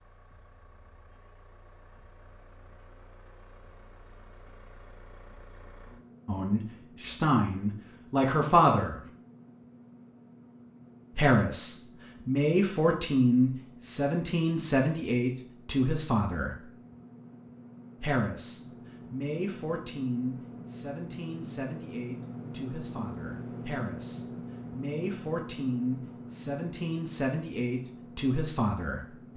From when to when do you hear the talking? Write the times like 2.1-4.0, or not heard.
6.2-9.0, 11.2-16.6, 18.0-29.1.